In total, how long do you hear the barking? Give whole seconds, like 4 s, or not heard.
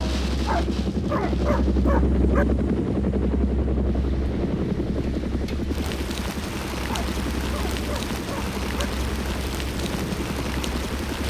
4 s.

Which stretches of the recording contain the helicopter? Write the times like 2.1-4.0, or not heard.
0.0-11.2.